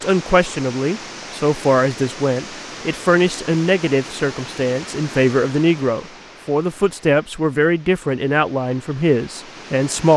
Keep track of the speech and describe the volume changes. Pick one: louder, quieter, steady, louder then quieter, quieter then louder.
steady.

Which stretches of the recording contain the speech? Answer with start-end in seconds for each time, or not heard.
0.0-10.1.